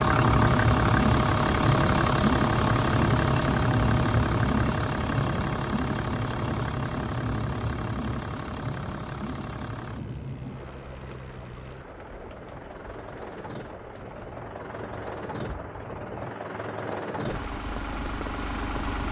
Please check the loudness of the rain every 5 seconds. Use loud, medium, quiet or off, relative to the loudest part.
loud, medium, quiet, quiet.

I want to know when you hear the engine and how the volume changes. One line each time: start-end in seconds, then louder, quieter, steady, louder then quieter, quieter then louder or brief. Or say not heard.
0.0-19.0 quieter then louder.